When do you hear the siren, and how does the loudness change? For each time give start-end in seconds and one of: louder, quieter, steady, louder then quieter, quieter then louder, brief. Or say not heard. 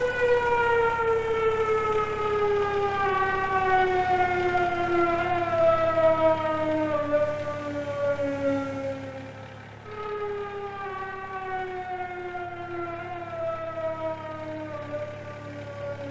0.0-16.0 quieter.